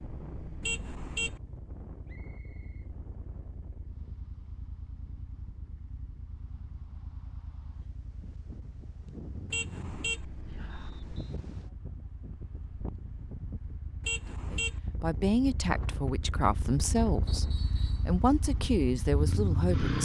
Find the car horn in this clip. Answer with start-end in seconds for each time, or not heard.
0.6-1.4, 9.5-10.2, 14.0-14.8.